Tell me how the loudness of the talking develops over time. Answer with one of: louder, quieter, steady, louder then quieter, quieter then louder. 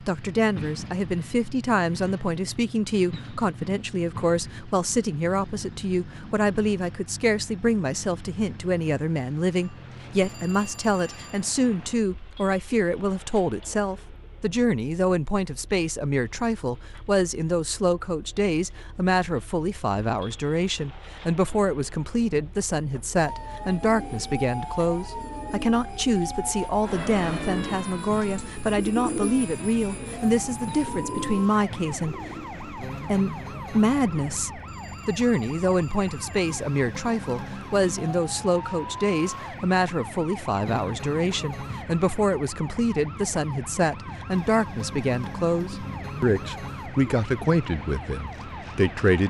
steady.